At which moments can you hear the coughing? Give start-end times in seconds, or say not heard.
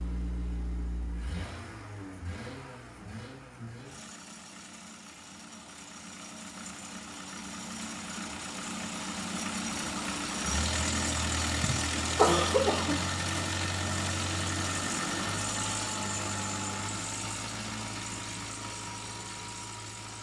11.5-12.9.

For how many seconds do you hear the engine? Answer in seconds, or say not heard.
20 s.